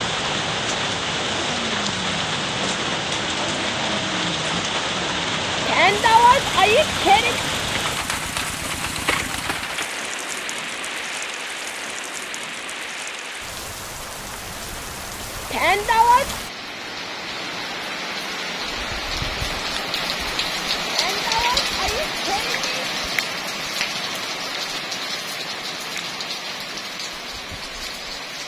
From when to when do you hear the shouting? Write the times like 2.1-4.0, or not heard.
5.7-7.4, 15.5-16.2, 20.9-22.9.